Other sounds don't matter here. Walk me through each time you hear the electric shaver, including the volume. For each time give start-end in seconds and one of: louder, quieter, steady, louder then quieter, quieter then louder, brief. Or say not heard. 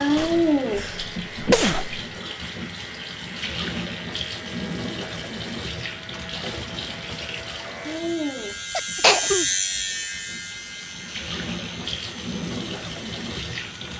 0.2-13.9 louder then quieter.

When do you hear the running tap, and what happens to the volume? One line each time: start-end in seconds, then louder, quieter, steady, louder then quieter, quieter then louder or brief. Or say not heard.
0.0-13.9 quieter then louder.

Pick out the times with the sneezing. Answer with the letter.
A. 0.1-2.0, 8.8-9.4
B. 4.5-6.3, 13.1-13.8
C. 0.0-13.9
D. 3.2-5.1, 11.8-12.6
A.